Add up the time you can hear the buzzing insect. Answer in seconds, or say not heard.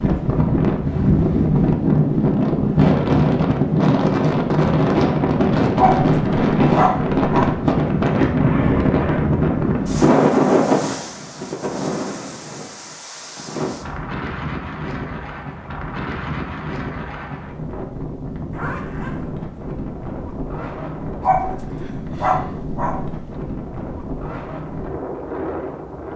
not heard.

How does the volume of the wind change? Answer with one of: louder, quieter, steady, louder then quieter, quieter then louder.
quieter.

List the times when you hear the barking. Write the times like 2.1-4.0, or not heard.
5.8-7.6, 21.2-23.4.